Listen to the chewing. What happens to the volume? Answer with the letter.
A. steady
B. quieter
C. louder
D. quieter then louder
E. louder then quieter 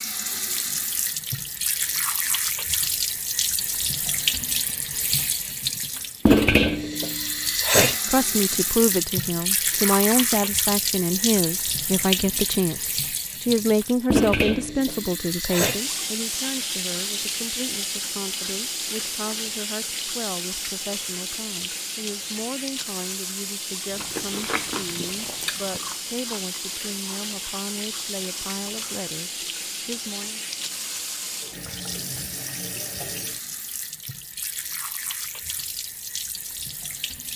B.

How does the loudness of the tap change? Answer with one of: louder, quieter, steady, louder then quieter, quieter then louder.
quieter.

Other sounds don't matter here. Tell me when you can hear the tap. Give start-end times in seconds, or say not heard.
0.0-37.3.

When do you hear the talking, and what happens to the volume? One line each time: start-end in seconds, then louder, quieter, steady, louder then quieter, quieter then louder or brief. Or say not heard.
8.1-30.4 quieter.